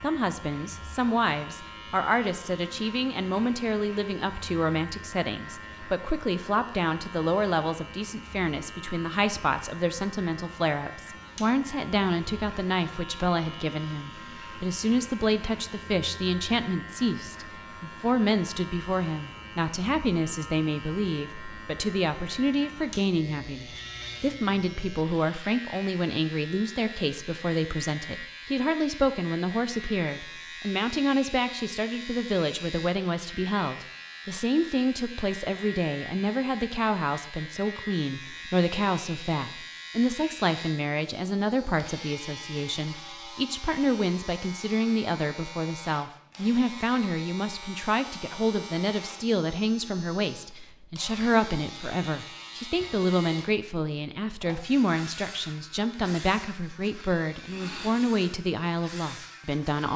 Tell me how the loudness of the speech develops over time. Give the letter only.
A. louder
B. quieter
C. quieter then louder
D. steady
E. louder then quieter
D.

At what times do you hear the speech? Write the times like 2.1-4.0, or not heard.
0.0-59.9.